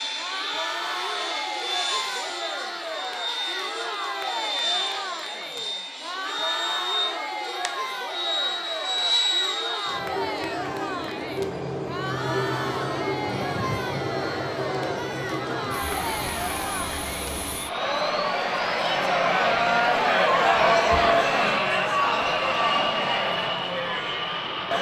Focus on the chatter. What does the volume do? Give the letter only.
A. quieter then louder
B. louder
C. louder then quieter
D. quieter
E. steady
B.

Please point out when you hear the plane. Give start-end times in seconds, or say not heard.
0.0-24.7.